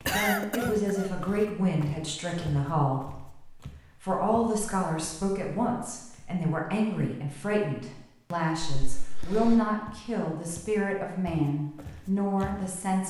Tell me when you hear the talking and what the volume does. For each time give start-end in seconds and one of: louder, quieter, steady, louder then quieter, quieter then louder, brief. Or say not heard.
0.1-13.0 steady.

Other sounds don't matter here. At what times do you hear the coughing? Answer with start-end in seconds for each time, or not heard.
0.1-1.1, 8.8-9.7.